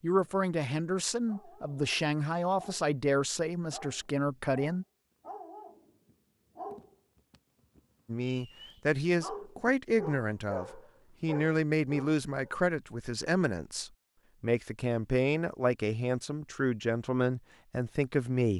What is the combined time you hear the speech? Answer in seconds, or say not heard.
15 s.